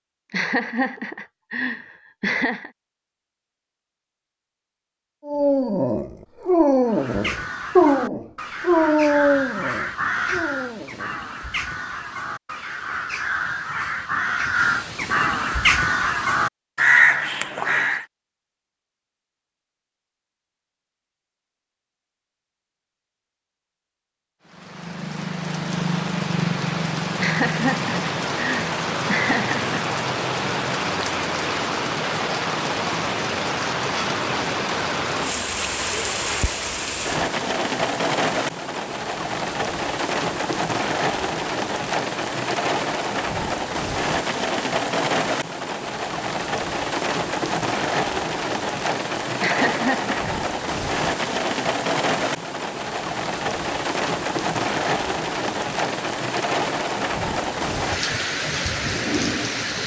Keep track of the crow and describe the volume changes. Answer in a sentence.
The loudness of the crow goes up.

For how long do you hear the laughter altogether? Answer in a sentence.
The laughter can be heard for 6 seconds in total.